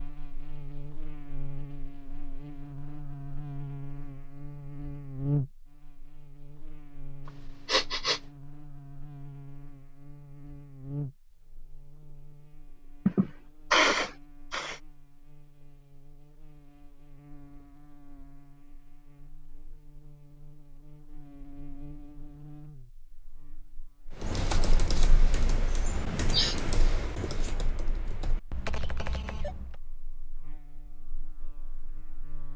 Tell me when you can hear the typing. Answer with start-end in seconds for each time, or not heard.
24.1-29.8.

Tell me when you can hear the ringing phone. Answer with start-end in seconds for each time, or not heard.
28.6-29.6.